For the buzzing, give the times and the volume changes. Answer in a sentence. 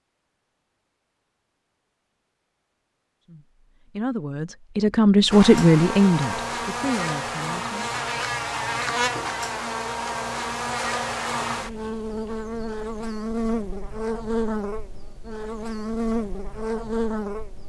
You can hear the buzzing from 5.3 to 17.6 s, at a steady volume.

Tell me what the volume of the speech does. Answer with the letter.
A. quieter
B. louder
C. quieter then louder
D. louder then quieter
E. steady
D.